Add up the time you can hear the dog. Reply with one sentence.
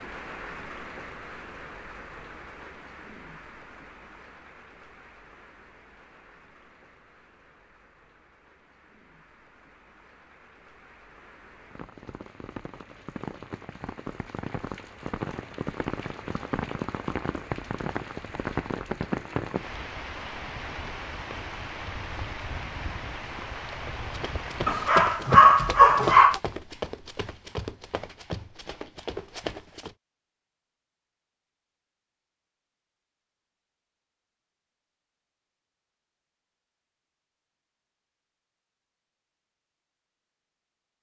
You can hear the dog for 2 seconds altogether.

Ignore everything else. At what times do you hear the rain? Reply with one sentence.
The rain can be heard from 0.0 to 24.9 s.